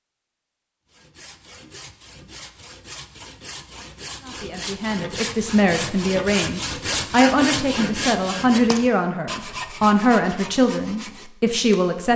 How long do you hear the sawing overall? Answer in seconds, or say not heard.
11 s.